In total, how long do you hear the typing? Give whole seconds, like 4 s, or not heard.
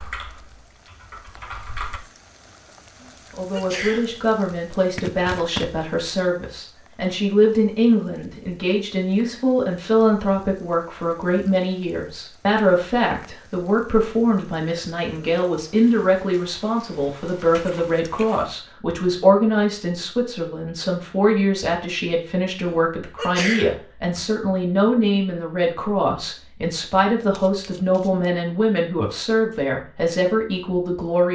2 s.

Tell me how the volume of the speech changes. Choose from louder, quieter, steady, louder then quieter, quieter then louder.
steady.